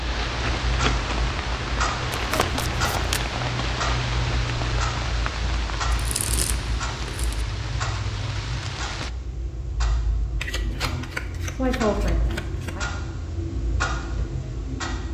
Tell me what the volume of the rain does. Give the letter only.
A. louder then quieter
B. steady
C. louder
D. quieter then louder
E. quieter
E.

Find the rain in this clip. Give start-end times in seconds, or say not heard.
0.0-9.1.